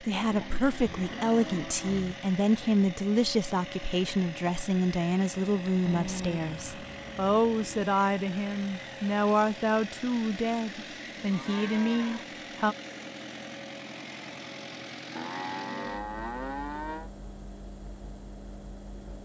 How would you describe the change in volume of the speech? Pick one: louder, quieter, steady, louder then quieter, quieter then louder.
steady.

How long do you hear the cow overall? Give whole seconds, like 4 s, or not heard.
7 s.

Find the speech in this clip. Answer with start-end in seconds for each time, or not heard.
0.0-12.8.